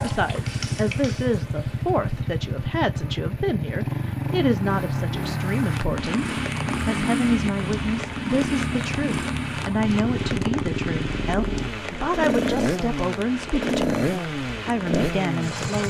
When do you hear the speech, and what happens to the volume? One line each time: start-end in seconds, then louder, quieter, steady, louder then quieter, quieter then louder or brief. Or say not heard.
0.0-15.8 steady.